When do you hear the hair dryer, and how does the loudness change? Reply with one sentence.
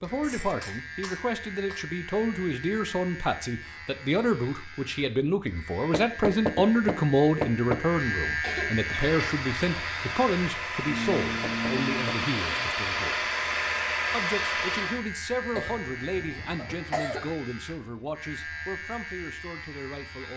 You can hear the hair dryer from 8.9 to 15.1 s, getting louder.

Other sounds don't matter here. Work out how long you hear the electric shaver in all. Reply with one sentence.
You can hear the electric shaver for 20 seconds altogether.